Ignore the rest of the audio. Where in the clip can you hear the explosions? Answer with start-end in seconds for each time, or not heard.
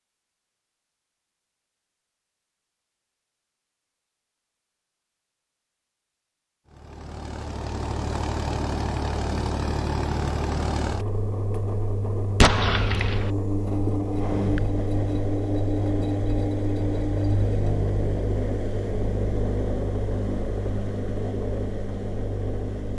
12.4-13.3.